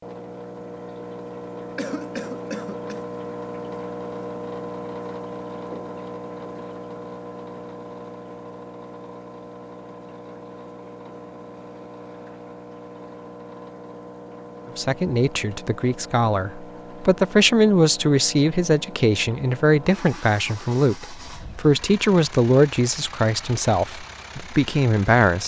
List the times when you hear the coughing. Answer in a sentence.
The coughing can be heard from 1.8 to 3.0 s.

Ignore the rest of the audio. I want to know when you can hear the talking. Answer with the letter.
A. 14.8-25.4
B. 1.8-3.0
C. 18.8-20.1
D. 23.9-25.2
A.